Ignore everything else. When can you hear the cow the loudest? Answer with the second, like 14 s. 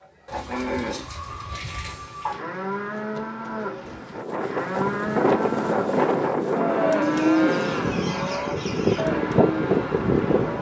7 s.